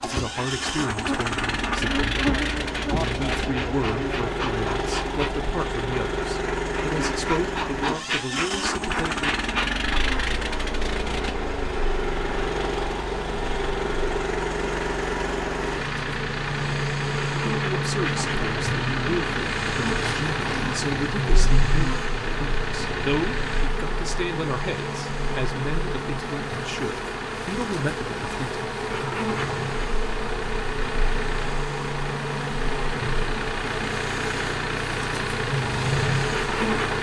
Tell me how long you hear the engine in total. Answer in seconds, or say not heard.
37 s.